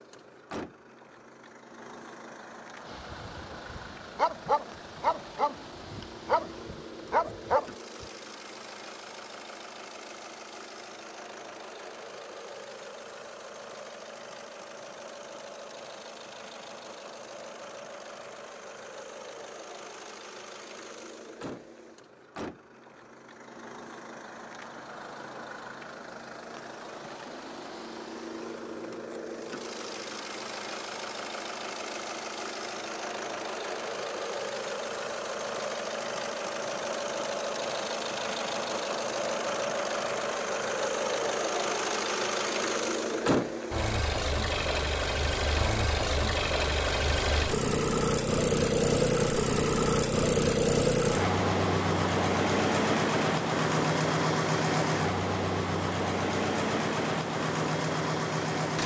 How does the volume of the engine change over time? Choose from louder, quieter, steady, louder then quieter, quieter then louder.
louder.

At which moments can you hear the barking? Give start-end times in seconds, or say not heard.
2.9-8.1.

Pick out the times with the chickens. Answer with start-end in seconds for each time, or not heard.
not heard.